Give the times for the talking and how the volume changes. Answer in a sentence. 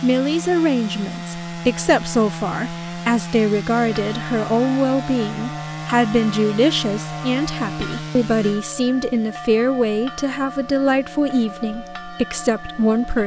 You can hear the talking from 0.0 to 13.2 s, at a steady volume.